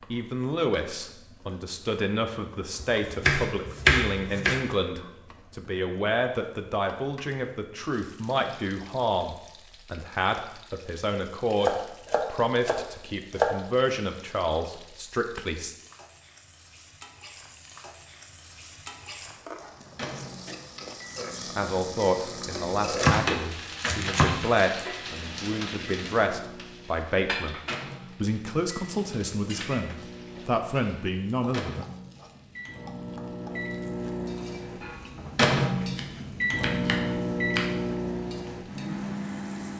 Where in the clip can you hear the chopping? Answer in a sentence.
You can hear the chopping from 2.8 to 4.6 s, from 11.6 to 13.5 s, from 22.9 to 24.6 s and from 35.8 to 37.7 s.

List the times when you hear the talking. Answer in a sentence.
The talking can be heard from 0.1 to 15.8 s, from 21.6 to 27.6 s and from 28.2 to 31.9 s.